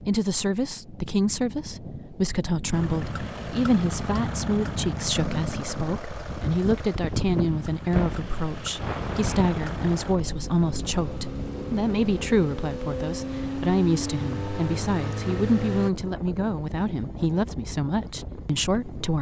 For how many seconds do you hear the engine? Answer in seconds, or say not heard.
13 s.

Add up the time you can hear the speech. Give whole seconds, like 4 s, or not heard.
19 s.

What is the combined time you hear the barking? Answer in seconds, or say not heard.
not heard.